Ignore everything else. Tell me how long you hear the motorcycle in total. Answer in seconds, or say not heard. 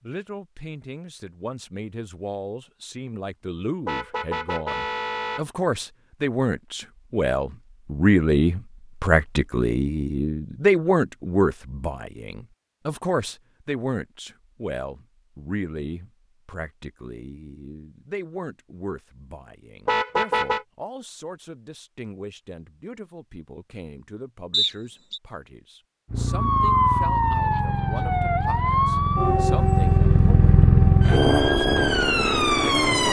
7 s.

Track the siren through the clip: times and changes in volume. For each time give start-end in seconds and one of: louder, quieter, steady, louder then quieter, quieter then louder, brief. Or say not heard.
26.3-33.0 quieter then louder.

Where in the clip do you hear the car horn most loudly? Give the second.
20 s.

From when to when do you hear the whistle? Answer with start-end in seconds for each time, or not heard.
24.5-25.2.